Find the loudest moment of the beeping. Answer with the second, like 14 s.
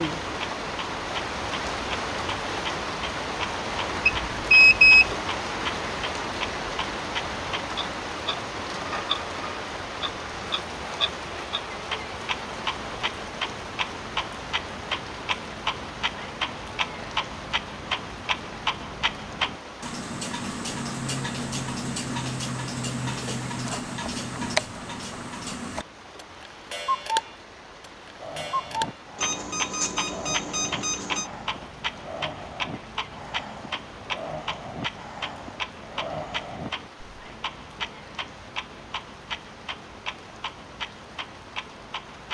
5 s.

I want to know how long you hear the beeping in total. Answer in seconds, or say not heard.
3 s.